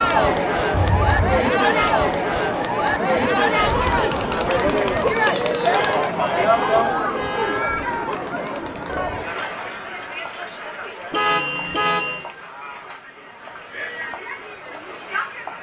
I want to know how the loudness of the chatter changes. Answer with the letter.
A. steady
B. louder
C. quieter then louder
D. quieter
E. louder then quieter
D.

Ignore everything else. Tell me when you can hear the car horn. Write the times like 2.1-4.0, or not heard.
0.7-1.4, 5.7-7.7, 11.1-12.2.